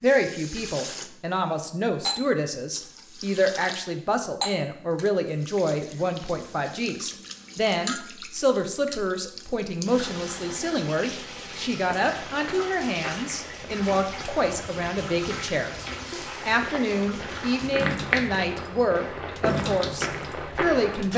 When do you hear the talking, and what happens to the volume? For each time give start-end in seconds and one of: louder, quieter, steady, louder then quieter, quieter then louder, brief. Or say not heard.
0.0-21.1 steady.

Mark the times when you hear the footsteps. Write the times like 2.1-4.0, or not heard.
11.8-21.1.